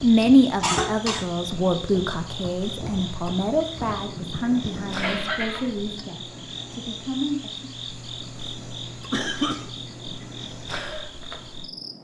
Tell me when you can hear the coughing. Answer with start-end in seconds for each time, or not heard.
0.6-1.3, 4.2-5.7, 9.1-9.7.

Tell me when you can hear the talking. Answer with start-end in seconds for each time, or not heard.
0.0-7.7.